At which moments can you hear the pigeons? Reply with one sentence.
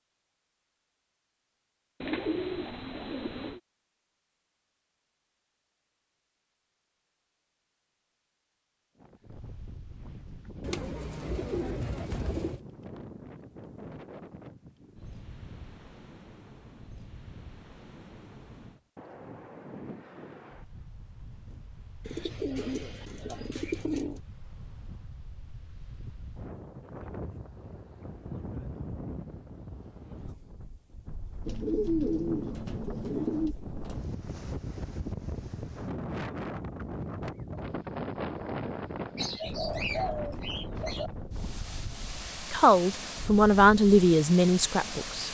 You can hear the pigeons from 2.0 to 3.6 s, from 10.6 to 12.6 s, from 22.1 to 24.2 s, from 31.4 to 33.5 s and from 39.1 to 41.1 s.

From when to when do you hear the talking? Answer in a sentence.
The talking can be heard from 42.5 to 45.2 s.